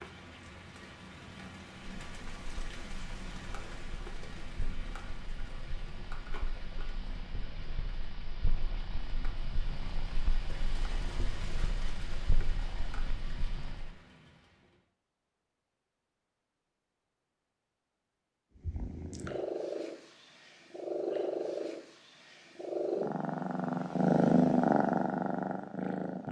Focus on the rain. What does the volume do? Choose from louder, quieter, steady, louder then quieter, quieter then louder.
steady.